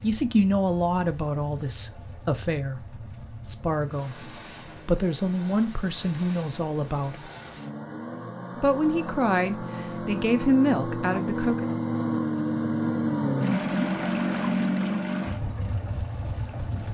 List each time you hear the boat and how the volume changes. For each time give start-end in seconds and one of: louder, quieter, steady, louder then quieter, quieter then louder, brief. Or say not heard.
0.0-16.9 louder.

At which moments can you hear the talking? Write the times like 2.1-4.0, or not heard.
0.0-4.2, 4.8-7.2, 8.6-11.7.